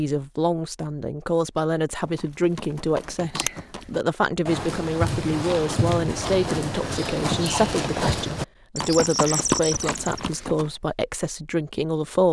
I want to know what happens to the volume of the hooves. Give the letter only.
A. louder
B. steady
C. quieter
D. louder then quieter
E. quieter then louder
A.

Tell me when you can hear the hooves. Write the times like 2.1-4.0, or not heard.
2.0-10.7.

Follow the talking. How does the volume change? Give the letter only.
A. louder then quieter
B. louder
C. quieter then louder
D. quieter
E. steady
E.